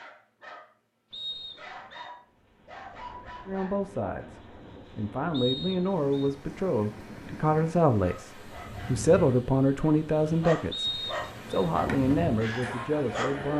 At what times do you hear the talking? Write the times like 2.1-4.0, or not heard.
3.5-13.5.